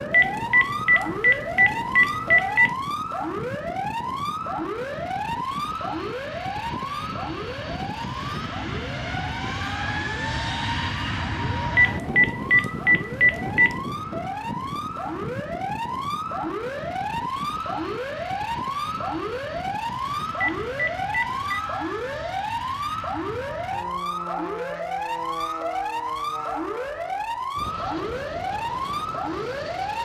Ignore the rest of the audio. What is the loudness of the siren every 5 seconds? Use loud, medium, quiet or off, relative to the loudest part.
loud, loud, medium, loud, loud, loud.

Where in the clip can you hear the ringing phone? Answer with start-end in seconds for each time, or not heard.
0.1-2.8, 11.8-13.8, 20.4-21.6.